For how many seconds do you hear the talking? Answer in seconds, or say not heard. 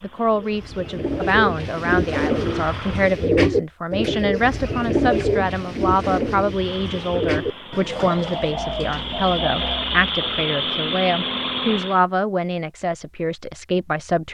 14 s.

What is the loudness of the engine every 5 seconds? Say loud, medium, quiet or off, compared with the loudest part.
quiet, medium, loud.